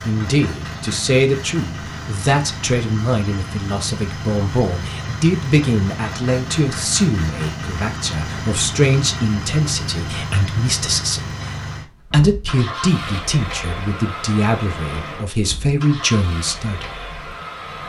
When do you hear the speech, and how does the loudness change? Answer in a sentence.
The speech can be heard from 0.1 to 17.1 s, at a steady volume.